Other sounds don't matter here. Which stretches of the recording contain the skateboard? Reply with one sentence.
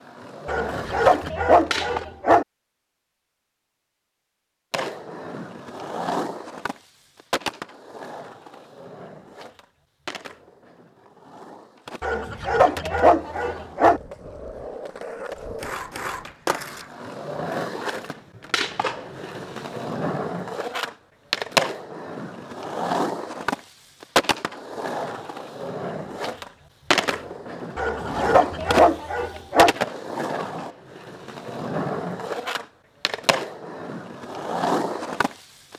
The skateboard can be heard from 0.0 to 2.0 s and from 4.7 to 35.7 s.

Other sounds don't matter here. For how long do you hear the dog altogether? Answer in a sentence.
The dog can be heard for 6 seconds in total.